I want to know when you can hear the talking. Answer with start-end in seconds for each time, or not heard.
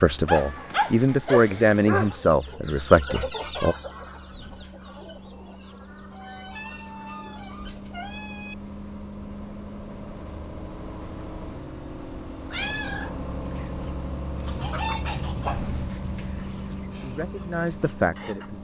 0.0-3.8, 17.0-18.5.